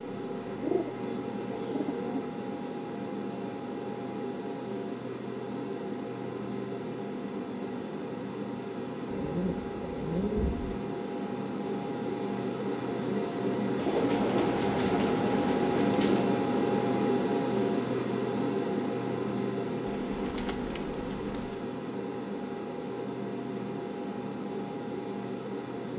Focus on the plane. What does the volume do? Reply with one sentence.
The loudness of the plane goes up, then down.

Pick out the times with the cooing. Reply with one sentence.
You can hear the cooing from 0.6 to 2.3 s, from 9.1 to 10.8 s, from 13.8 to 16.3 s and from 19.9 to 21.6 s.